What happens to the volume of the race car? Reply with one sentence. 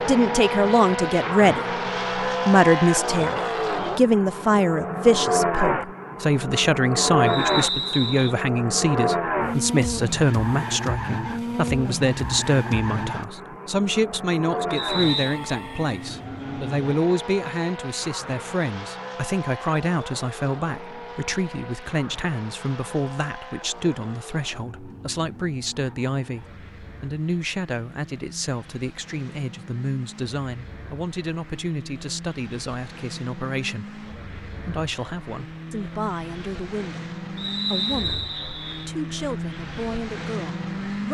The loudness of the race car goes down, then up.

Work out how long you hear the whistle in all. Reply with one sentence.
You can hear the whistle for 3 seconds altogether.